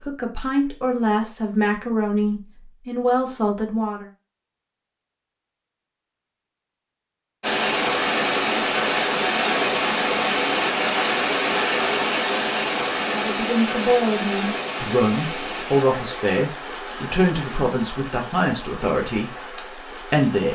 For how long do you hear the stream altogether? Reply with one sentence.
The stream can be heard for 13 seconds in total.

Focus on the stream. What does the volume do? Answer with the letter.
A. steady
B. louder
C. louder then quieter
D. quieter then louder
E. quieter
E.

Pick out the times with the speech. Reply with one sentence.
The speech can be heard from 0.0 to 4.0 s and from 13.1 to 20.5 s.